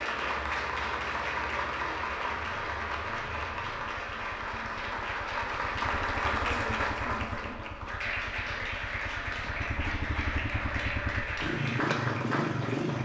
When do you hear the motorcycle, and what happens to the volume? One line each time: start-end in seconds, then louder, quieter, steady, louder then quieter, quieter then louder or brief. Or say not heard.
0.0-12.9 louder.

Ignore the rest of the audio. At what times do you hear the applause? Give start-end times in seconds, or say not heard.
0.0-12.9.